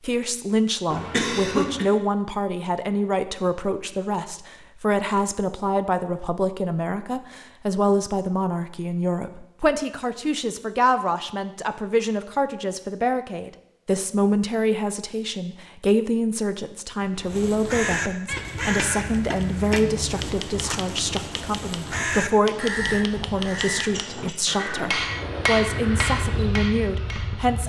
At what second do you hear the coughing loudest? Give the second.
1 s.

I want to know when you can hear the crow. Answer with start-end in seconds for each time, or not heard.
17.0-26.5.